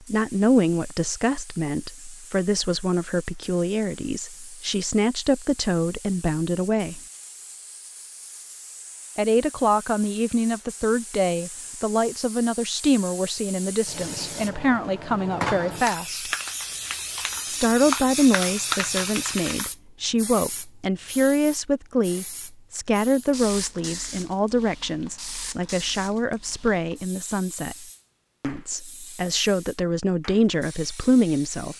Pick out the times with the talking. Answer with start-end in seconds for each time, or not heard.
0.1-7.0, 9.2-16.3, 17.5-31.7.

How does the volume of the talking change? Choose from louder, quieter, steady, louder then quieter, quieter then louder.
steady.